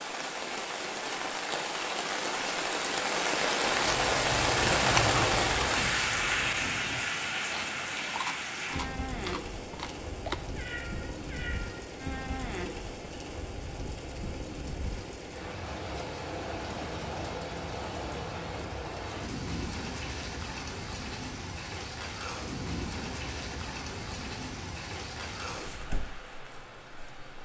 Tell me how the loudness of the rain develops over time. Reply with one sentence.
The volume of the rain goes down.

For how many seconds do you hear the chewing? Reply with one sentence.
The chewing can be heard for 7 seconds in total.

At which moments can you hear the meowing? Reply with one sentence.
The meowing can be heard from 10.6 to 11.8 s.